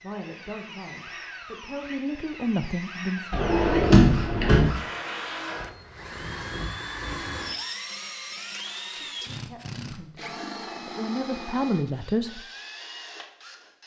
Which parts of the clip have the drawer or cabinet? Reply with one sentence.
You can hear the drawer or cabinet from 3.3 to 4.7 s.